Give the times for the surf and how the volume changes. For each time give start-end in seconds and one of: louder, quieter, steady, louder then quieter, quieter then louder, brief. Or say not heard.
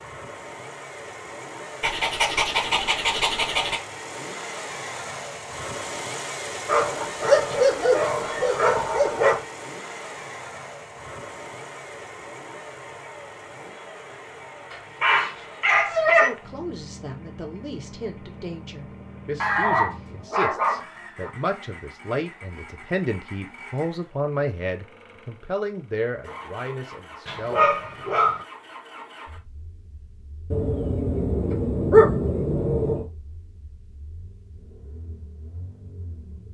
not heard.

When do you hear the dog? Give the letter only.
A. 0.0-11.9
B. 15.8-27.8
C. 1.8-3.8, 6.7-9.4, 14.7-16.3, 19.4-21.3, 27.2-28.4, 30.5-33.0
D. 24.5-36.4
C.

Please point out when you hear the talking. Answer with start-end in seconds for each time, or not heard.
15.8-27.8.